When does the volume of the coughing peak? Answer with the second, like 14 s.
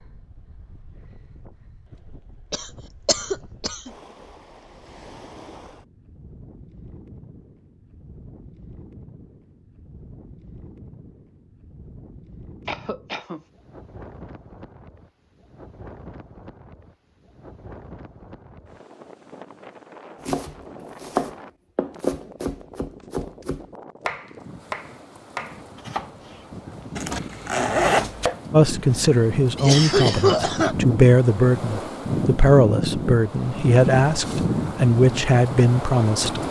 30 s.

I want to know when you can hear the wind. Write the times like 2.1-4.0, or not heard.
0.0-36.4.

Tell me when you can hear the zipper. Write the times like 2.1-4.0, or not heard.
26.9-28.1.